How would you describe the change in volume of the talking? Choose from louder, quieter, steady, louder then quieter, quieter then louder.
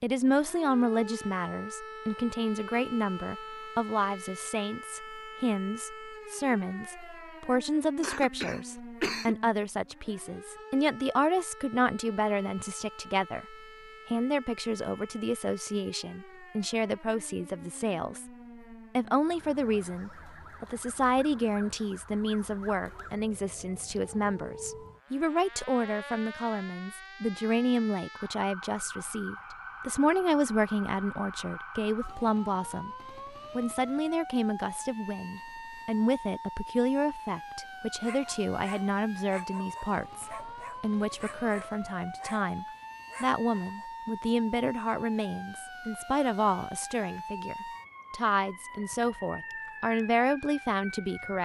steady.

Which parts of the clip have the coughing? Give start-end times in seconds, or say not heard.
8.0-9.3.